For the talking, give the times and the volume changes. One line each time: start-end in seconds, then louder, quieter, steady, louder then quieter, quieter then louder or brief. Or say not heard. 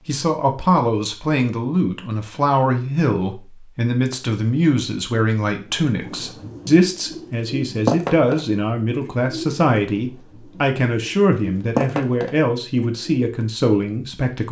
0.1-14.4 steady.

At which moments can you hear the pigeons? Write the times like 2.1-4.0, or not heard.
5.5-13.3.